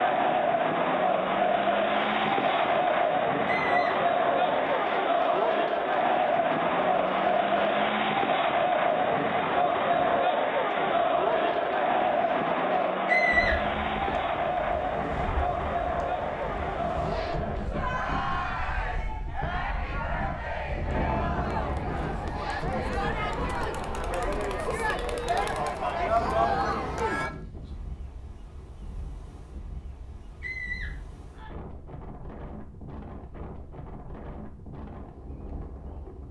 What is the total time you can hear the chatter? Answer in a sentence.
You can hear the chatter for 27 seconds altogether.